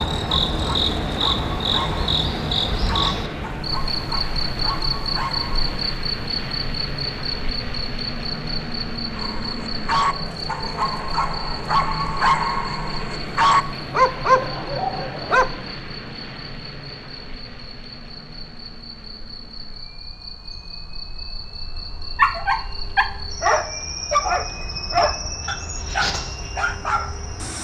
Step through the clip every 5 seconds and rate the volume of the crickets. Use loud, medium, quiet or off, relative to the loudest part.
loud, medium, medium, quiet, medium, medium.